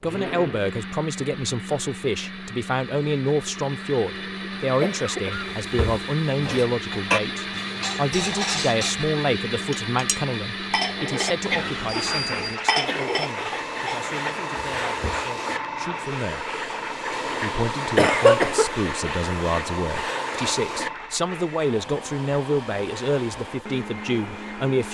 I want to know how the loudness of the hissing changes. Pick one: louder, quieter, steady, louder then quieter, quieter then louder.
quieter.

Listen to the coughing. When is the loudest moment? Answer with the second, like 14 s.
18 s.